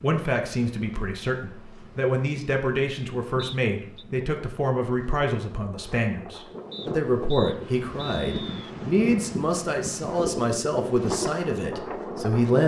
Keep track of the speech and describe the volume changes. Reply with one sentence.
The loudness of the speech stays about the same.